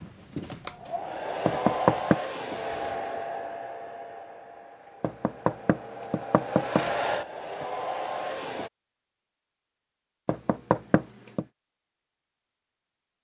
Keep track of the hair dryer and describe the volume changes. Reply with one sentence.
The volume of the hair dryer goes down, then up.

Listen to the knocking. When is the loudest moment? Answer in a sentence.
The volume of the knocking peaks at 2 seconds.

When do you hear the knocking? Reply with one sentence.
You can hear the knocking from 1.4 to 2.2 s, from 5.0 to 6.8 s and from 10.2 to 11.4 s.